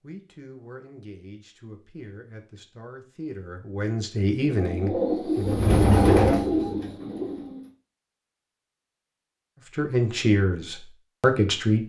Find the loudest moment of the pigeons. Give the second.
6 s.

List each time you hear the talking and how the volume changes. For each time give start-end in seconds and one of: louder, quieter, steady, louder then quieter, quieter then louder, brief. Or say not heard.
0.0-5.6 louder
9.8-11.8 brief.